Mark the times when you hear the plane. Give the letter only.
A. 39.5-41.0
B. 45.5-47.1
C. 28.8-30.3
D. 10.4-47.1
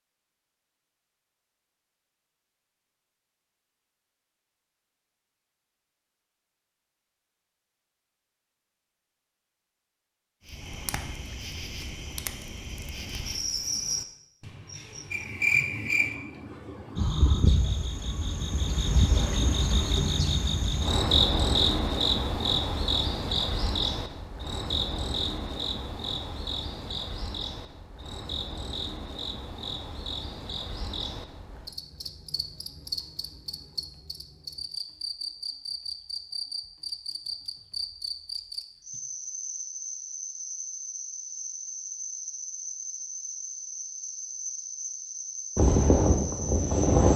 B.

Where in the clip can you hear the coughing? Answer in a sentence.
The coughing can't be heard in this clip.